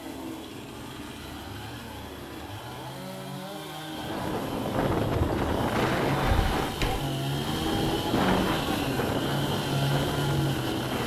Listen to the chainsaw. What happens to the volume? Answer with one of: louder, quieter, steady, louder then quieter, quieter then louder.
louder.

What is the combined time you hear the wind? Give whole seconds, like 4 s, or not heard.
7 s.